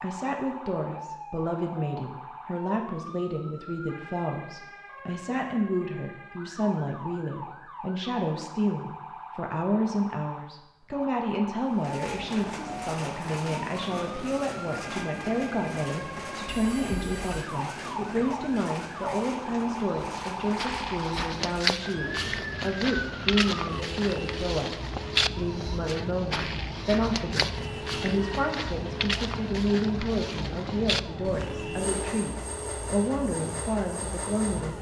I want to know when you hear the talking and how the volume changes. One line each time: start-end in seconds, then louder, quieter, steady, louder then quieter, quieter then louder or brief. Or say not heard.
0.0-34.7 steady.